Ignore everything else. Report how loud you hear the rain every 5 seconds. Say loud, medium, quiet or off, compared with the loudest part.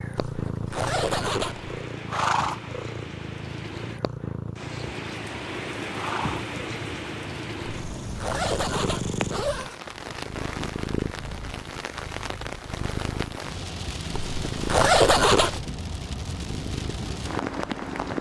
medium, loud, loud, loud.